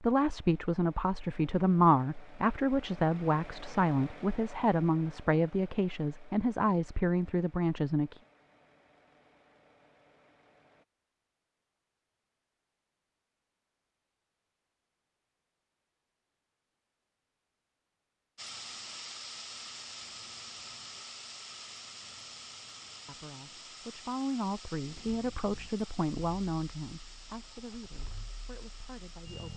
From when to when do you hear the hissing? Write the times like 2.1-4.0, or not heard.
18.4-29.5.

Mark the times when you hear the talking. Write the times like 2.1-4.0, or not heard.
0.0-8.2, 23.1-29.5.